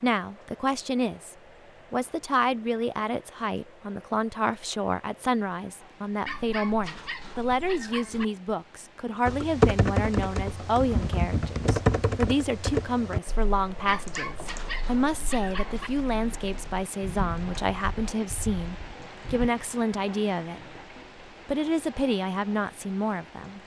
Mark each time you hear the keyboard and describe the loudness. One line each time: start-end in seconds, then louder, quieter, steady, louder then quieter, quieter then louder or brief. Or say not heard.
9.2-19.5 quieter then louder.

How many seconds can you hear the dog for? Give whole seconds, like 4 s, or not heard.
4 s.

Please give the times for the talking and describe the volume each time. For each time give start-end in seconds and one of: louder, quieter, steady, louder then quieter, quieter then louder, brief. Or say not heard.
0.0-20.8 steady
21.4-23.6 brief.